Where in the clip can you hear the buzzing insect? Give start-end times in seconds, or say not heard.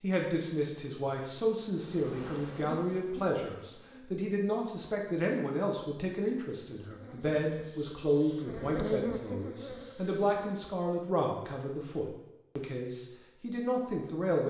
1.6-4.0, 6.8-10.4.